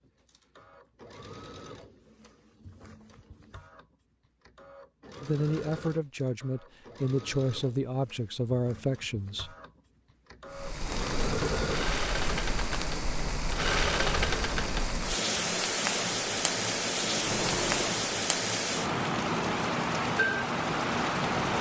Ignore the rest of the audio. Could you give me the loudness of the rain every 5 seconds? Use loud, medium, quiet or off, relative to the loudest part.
off, off, medium, loud, loud.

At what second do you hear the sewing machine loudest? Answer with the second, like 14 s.
14 s.